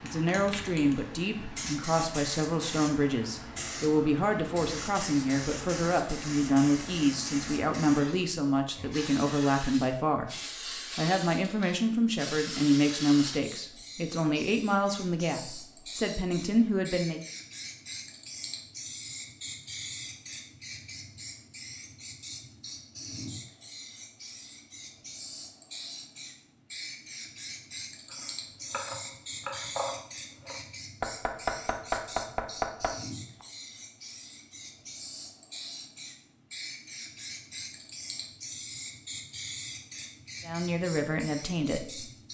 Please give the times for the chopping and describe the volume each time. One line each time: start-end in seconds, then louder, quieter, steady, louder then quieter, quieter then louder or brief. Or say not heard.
28.1-33.5 louder.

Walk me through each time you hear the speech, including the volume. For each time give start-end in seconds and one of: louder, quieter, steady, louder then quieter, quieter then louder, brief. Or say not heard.
0.0-17.2 steady
40.5-42.2 brief.